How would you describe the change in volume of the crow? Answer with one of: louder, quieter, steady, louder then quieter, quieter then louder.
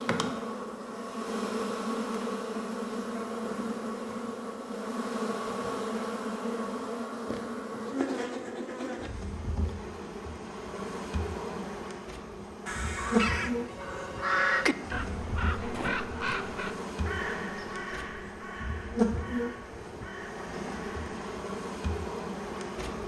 quieter.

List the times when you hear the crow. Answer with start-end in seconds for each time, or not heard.
12.7-21.1.